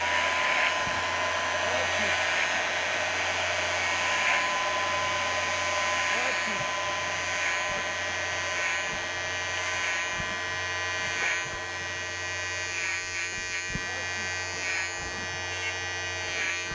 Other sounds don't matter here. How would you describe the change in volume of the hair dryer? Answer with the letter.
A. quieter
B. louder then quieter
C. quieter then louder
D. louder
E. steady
A.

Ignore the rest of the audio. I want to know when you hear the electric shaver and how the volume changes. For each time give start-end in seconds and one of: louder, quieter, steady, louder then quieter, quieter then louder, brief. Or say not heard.
0.0-16.7 steady.